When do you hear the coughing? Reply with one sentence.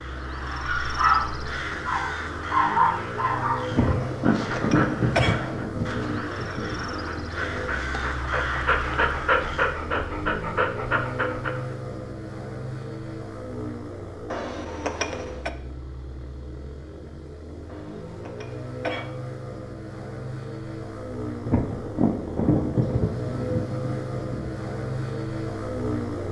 The coughing can be heard from 4.0 to 5.7 s, from 14.3 to 15.5 s and from 17.6 to 19.1 s.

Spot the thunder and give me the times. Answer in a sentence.
The thunder can be heard from 3.7 to 7.2 s and from 21.4 to 24.5 s.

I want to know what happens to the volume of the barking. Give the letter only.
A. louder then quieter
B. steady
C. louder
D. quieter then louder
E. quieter
D.